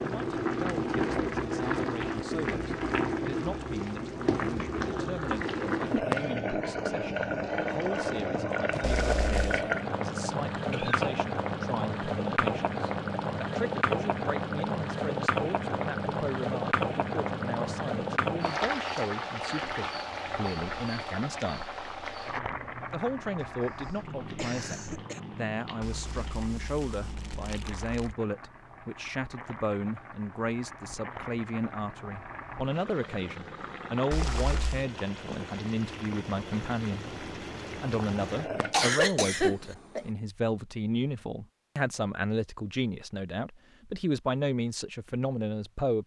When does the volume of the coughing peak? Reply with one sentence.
The volume of the coughing peaks at 39 seconds.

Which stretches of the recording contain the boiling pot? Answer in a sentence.
You can hear the boiling pot from 0.0 to 38.8 s.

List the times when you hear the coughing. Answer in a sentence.
You can hear the coughing from 10.7 to 11.1 s, from 24.4 to 25.2 s and from 38.7 to 40.0 s.